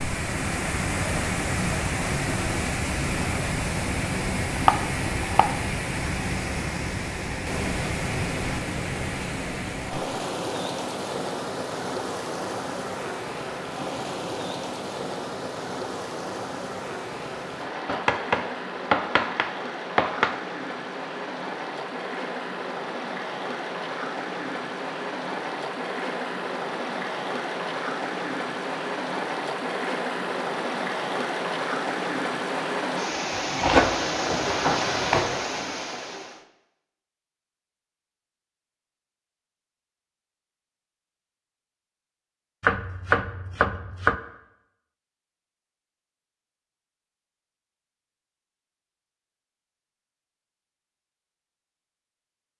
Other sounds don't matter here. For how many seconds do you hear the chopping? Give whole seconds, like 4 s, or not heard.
7 s.